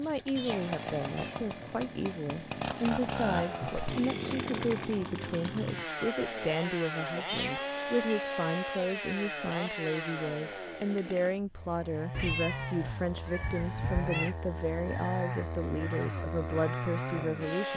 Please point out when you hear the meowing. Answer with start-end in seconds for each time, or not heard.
0.3-1.4, 7.2-8.2, 12.1-14.3.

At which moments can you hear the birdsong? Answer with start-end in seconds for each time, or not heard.
not heard.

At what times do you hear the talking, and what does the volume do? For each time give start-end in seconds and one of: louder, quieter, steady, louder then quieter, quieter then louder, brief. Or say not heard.
0.0-17.7 steady.